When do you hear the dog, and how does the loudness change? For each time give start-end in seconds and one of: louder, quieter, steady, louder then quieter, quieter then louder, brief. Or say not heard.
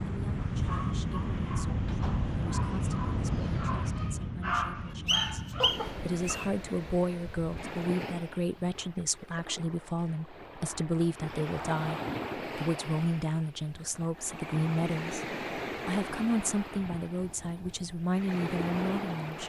0.6-6.4 louder.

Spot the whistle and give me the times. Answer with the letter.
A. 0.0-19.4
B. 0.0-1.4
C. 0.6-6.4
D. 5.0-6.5
D.